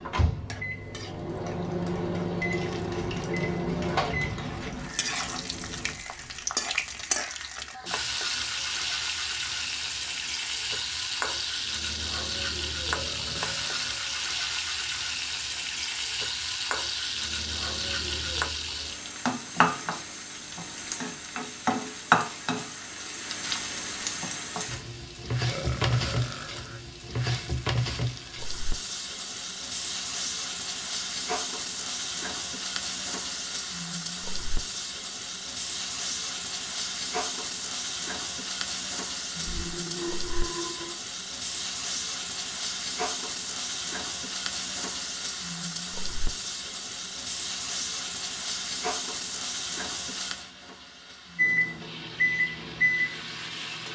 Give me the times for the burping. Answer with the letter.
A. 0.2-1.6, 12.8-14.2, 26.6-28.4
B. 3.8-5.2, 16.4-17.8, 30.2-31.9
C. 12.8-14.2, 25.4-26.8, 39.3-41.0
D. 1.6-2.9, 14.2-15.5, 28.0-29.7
C.